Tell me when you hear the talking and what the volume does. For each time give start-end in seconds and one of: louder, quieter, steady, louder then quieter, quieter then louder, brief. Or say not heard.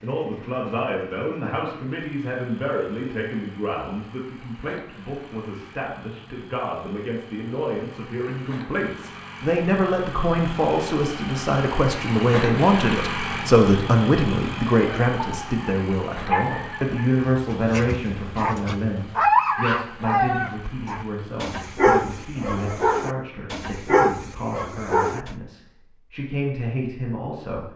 0.0-27.7 louder then quieter.